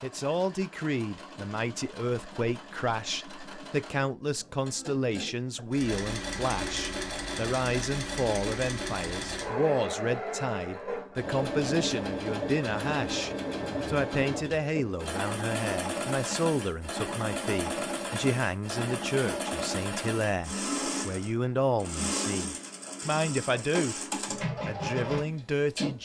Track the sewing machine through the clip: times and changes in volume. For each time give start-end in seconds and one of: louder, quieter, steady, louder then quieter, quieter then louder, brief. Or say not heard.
0.0-26.0 louder.